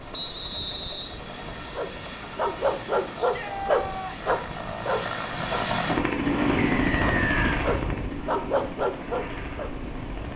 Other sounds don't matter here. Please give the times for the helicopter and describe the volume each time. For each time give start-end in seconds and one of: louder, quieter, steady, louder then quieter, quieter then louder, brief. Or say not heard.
0.0-10.3 louder then quieter.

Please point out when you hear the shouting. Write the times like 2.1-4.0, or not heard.
3.1-4.3.